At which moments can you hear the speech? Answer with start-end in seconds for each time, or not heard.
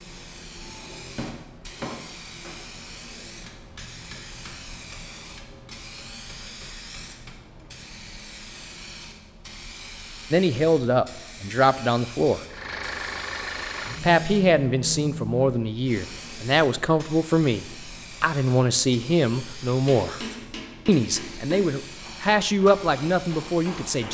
10.3-12.4, 14.0-20.2, 20.9-24.1.